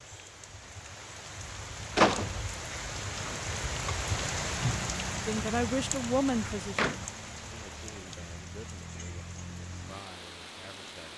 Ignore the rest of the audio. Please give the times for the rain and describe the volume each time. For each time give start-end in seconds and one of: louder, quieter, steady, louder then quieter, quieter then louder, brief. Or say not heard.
0.0-11.1 louder then quieter.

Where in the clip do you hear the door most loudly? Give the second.
2 s.